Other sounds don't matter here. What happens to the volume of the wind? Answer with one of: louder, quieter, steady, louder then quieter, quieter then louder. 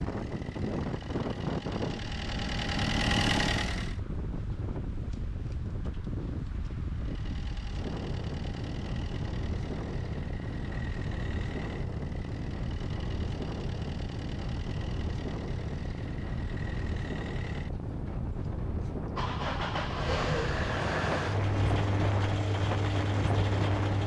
steady.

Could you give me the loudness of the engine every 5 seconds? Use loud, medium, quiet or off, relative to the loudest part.
loud, quiet, quiet, medium, loud.